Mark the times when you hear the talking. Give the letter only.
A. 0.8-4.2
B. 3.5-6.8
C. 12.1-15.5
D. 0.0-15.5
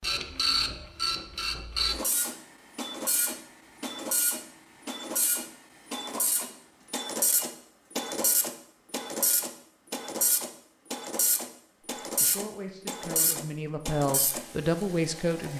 C.